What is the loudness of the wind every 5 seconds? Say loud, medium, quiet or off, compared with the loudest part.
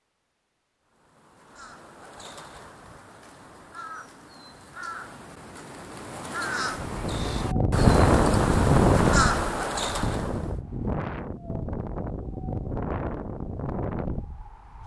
off, loud, medium.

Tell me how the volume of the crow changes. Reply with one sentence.
The loudness of the crow goes up.